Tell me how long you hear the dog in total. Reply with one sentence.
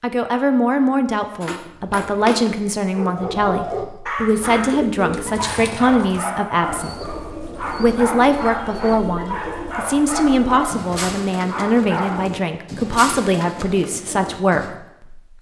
The dog can be heard for 11 seconds in total.